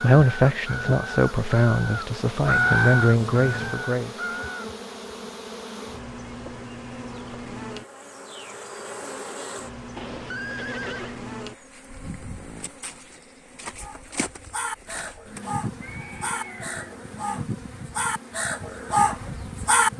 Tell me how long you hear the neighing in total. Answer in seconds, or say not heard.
4 s.